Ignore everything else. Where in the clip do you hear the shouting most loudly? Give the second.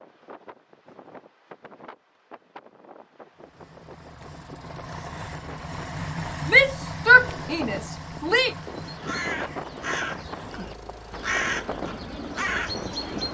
7 s.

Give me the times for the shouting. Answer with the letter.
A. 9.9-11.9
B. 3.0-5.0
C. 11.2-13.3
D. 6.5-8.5
D.